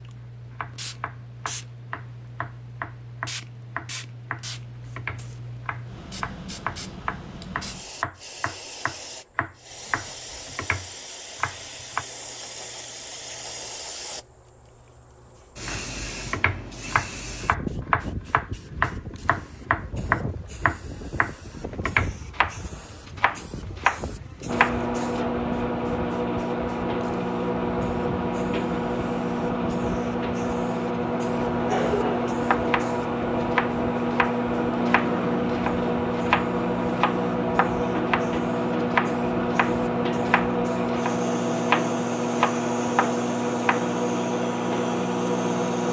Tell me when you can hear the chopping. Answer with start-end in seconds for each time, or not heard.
0.4-12.1, 15.7-25.2, 32.5-43.9.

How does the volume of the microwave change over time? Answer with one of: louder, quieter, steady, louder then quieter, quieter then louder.
steady.